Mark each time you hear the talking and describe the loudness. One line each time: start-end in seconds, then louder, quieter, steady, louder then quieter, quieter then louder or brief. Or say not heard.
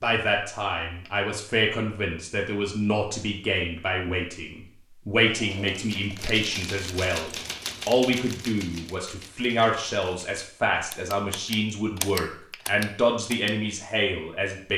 0.0-14.7 steady.